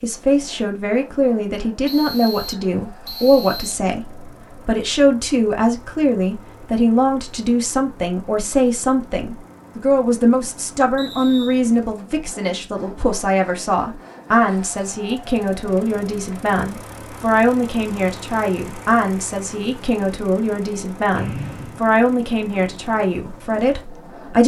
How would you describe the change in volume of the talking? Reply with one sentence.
The volume of the talking stays about the same.